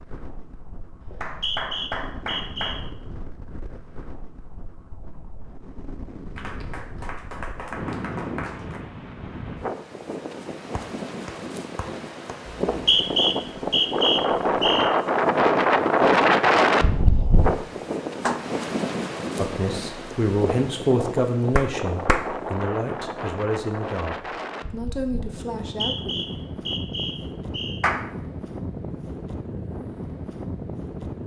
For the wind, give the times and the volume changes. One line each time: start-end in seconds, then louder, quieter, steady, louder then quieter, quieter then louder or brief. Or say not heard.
0.0-31.2 louder then quieter.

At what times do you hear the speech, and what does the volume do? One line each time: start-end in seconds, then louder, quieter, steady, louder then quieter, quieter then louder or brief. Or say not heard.
19.4-26.2 quieter.